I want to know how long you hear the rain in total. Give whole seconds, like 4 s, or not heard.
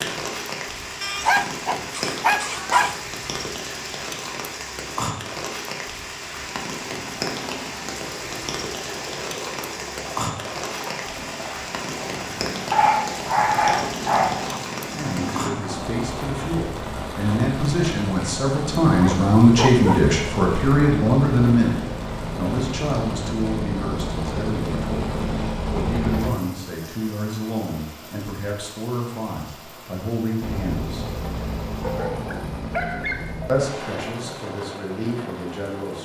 36 s.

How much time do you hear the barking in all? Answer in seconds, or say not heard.
7 s.